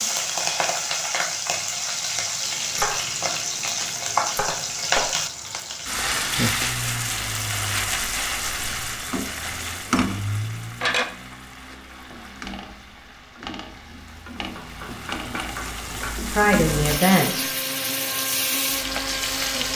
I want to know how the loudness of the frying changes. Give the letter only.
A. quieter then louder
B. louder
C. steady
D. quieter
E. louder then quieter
A.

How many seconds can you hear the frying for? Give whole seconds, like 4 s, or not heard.
20 s.